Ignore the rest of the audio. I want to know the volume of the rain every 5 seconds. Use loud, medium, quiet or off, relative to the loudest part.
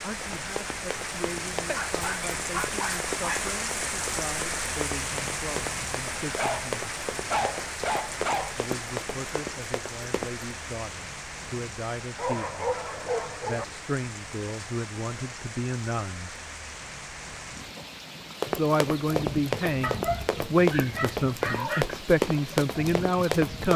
loud, loud, medium, medium, medium.